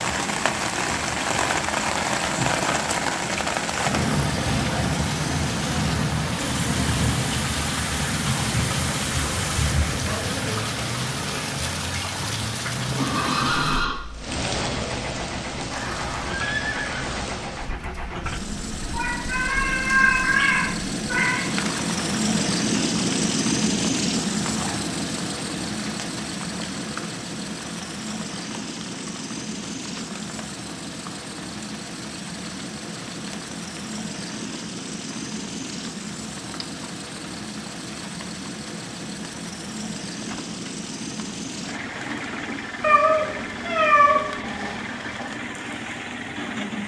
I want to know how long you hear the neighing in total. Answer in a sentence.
The neighing can be heard for 3 seconds in total.